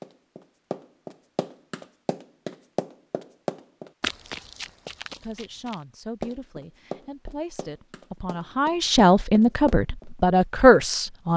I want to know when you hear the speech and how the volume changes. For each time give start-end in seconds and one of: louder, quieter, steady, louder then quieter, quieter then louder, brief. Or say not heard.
5.2-11.3 louder.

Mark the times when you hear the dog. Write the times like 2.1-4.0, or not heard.
not heard.